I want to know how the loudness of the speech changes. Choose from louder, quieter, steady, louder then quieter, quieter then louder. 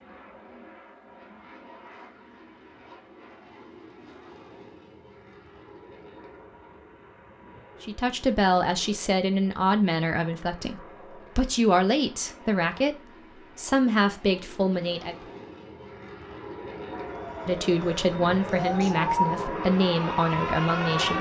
steady.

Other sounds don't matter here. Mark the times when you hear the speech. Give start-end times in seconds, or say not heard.
7.8-15.2, 17.4-21.1.